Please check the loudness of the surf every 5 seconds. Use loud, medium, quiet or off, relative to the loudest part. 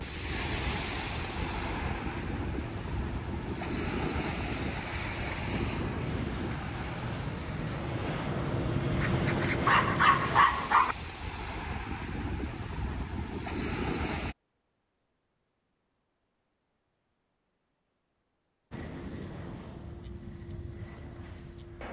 loud, loud, loud, off, off.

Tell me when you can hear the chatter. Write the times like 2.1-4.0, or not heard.
not heard.